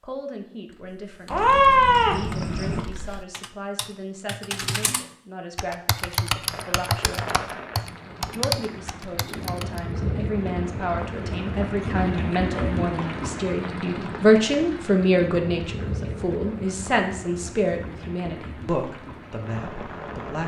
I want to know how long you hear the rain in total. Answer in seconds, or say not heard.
14 s.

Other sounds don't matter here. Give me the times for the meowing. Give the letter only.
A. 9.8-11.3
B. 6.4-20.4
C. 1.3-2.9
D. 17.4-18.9
C.